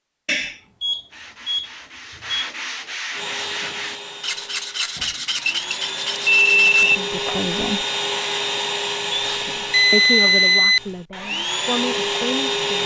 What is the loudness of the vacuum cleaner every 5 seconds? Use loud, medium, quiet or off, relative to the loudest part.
medium, loud, loud.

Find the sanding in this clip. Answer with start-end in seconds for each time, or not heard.
1.1-7.5.